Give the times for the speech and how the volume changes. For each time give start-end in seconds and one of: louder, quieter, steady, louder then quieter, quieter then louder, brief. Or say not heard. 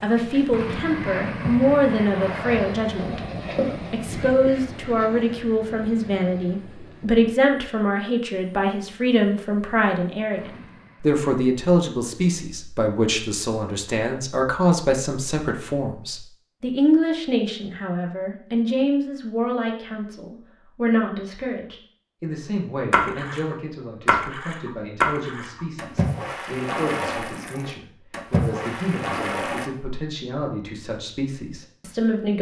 0.0-32.3 quieter.